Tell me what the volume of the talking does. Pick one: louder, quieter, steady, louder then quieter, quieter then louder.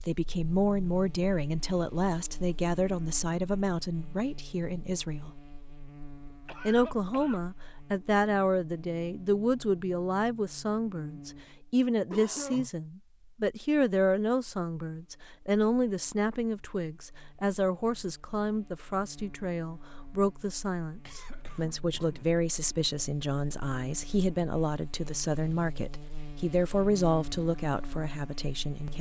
steady.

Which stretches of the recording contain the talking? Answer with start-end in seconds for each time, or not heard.
0.1-5.4, 6.7-28.9.